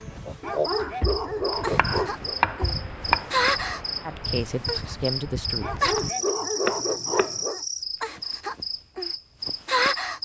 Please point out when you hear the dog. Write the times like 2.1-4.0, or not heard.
0.4-2.4, 5.6-7.7.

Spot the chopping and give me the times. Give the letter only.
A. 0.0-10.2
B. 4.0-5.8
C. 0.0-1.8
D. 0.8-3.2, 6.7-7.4
D.